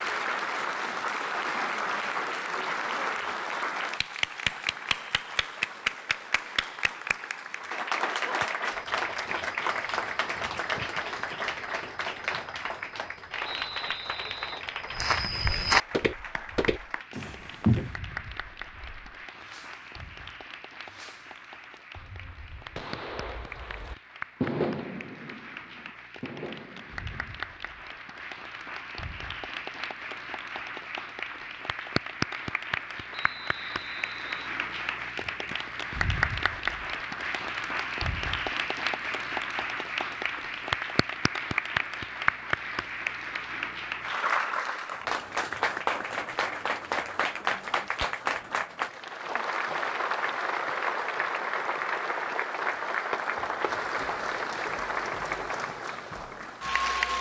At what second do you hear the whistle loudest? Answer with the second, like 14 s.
14 s.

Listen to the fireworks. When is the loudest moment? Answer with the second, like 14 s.
25 s.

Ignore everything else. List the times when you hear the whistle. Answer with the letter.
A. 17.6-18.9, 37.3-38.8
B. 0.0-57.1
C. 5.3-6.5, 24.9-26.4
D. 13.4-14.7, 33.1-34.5
D.